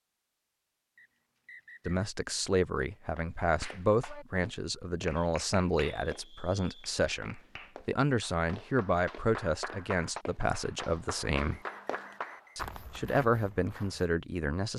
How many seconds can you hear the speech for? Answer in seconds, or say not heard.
12 s.